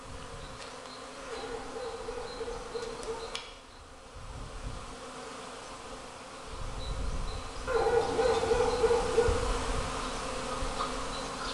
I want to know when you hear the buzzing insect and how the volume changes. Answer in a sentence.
You can hear the buzzing insect from 0.0 to 11.4 s, getting louder.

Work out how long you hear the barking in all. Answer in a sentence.
The barking can be heard for 4 seconds in total.